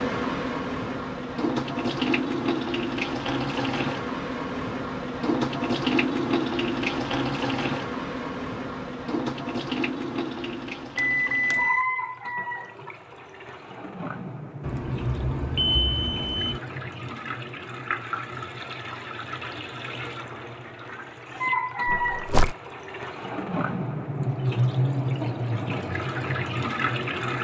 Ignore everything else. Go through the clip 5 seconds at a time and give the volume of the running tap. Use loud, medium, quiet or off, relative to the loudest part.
loud, loud, medium, medium, loud, loud.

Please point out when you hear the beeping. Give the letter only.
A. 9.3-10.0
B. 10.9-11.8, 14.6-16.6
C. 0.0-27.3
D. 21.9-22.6
B.